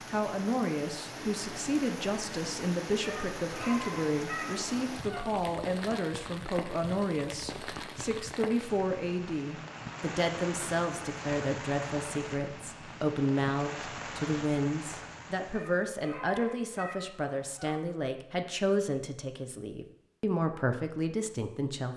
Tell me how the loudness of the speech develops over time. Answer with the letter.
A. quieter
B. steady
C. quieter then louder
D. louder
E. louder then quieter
B.